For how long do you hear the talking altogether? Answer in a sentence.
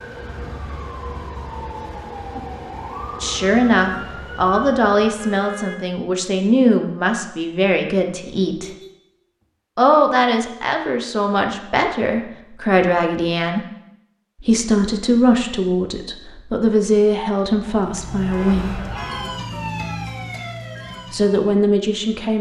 The talking can be heard for 15 seconds in total.